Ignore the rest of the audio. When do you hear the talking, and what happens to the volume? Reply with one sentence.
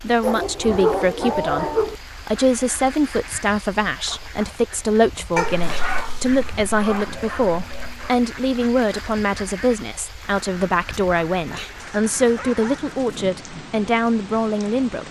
You can hear the talking from 0.0 to 15.0 s, at a steady volume.